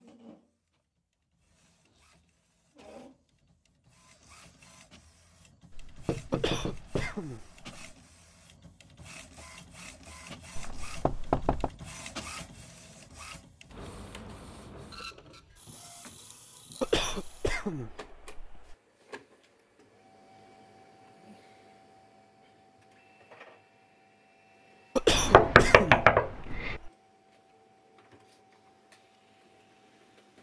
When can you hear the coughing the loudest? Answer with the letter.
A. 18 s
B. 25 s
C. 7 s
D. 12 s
B.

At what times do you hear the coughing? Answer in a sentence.
The coughing can be heard from 6.3 to 7.8 s, from 16.8 to 18.8 s and from 24.9 to 26.9 s.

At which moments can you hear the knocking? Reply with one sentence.
The knocking can be heard from 5.7 to 7.2 s, from 10.6 to 11.7 s and from 25.1 to 26.8 s.